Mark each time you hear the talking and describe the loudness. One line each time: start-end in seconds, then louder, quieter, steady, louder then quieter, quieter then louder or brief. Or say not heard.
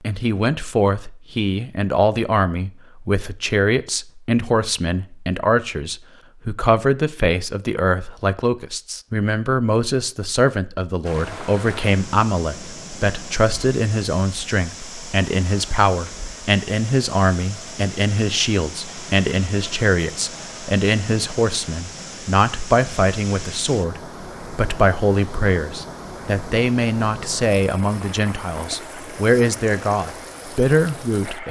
0.0-31.4 steady.